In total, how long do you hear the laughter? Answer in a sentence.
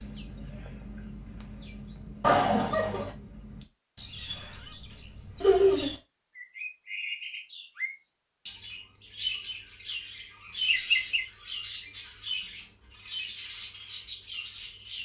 You can hear the laughter for 2 seconds altogether.